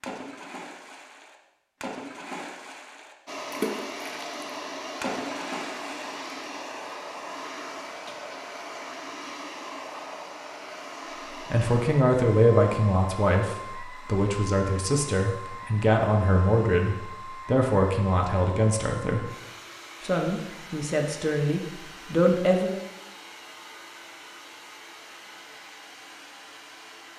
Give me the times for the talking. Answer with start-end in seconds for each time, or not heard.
11.5-19.2, 20.0-22.8.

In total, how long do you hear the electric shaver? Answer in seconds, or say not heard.
not heard.